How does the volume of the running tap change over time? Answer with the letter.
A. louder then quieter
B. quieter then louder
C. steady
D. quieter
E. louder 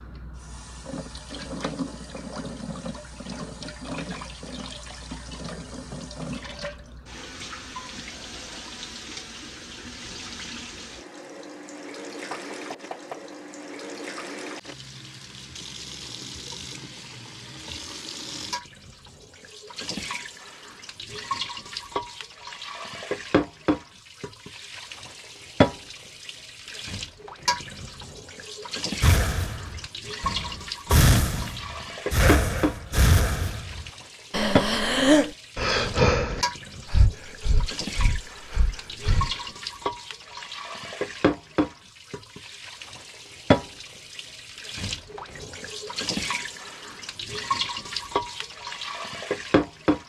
E.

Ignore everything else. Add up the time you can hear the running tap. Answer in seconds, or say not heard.
50 s.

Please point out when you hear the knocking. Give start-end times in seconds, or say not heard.
12.3-13.3.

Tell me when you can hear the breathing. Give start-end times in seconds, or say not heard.
29.0-39.4.